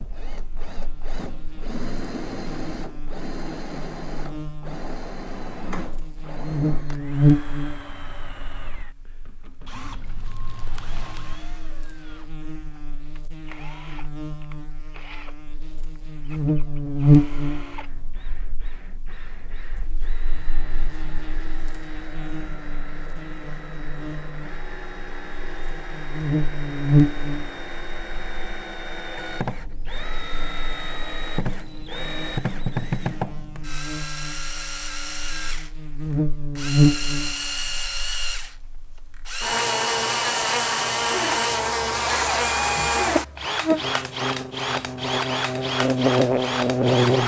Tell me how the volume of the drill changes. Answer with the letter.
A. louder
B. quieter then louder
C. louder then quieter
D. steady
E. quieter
B.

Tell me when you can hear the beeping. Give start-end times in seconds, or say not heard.
9.7-11.4.